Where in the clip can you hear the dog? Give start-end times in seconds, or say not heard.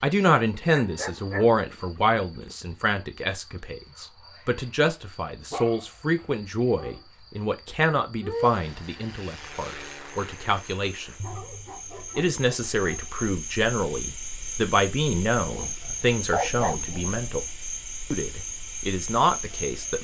0.8-2.6, 5.5-7.0, 11.2-13.2, 15.4-17.4.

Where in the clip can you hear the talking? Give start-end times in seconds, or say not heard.
0.0-11.2, 12.2-17.4, 18.1-19.9.